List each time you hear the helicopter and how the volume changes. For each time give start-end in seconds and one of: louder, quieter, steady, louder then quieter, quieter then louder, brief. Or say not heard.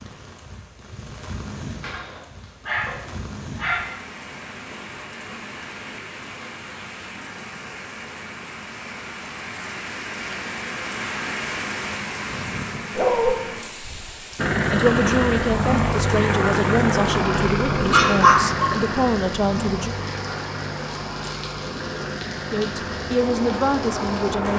14.3-24.5 quieter.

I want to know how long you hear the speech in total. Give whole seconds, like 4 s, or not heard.
7 s.